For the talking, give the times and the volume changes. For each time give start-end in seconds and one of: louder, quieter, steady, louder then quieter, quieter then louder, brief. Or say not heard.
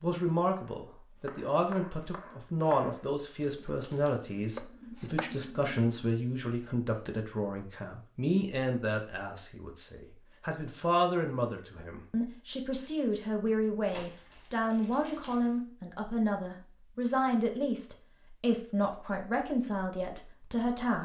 0.0-20.9 steady.